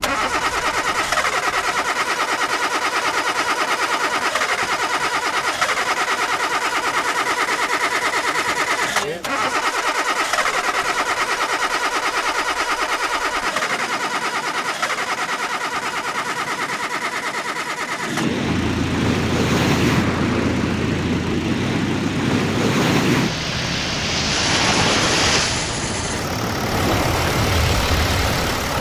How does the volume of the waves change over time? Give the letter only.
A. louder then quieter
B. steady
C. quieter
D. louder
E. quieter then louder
D.